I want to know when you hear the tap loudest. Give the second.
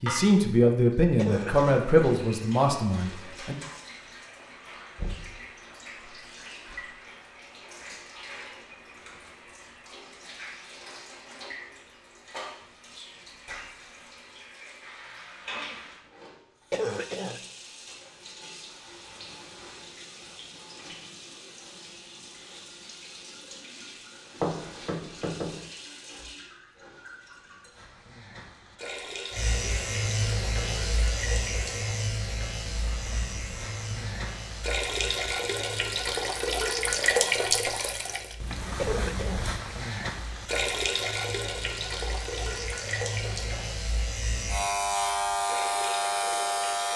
37 s.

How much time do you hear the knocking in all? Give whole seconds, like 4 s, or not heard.
2 s.